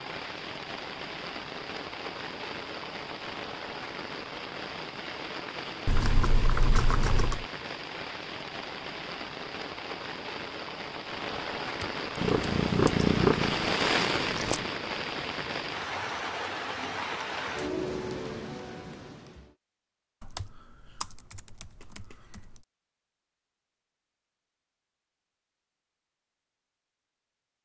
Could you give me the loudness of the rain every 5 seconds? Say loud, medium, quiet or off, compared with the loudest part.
medium, medium, loud, loud, off, off.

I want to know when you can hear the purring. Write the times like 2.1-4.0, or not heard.
12.2-14.7.